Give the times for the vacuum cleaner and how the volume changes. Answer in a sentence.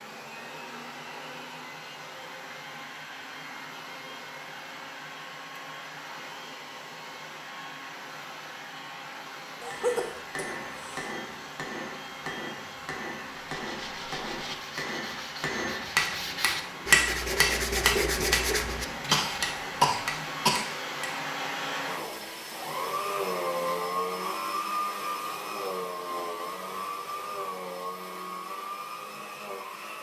You can hear the vacuum cleaner from 0.0 to 29.9 s, getting louder.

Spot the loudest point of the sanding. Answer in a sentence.
The volume of the sanding peaks at 18 seconds.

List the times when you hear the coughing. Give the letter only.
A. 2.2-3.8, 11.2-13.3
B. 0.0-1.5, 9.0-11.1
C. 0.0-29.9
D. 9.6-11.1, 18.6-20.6
D.